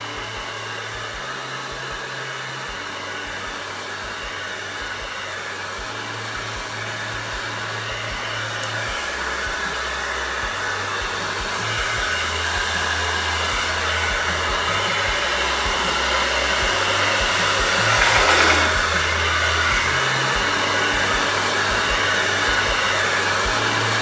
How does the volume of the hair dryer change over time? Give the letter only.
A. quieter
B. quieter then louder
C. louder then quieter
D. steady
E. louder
E.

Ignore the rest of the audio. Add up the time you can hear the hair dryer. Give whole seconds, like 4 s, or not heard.
24 s.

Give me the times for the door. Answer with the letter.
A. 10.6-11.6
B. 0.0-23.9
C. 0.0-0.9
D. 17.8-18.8
D.